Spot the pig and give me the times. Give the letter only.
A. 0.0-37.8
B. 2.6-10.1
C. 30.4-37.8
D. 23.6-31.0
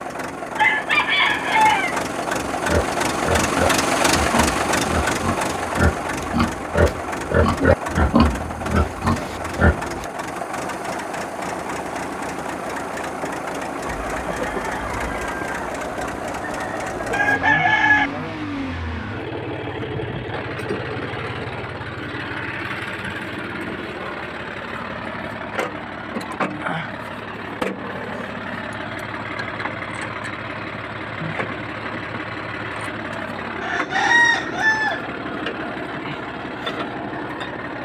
B.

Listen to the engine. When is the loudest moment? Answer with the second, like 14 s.
4 s.